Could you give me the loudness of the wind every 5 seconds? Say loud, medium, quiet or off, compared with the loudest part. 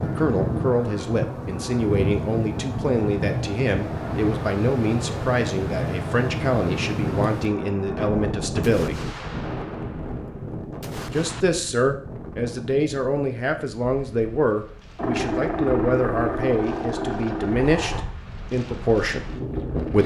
loud, loud, medium, medium.